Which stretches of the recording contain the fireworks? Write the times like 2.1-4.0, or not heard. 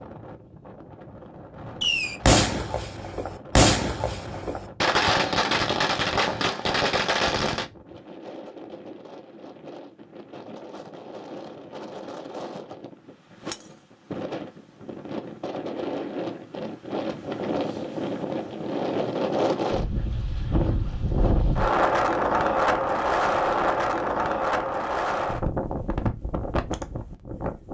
1.8-7.7.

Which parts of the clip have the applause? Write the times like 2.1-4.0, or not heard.
not heard.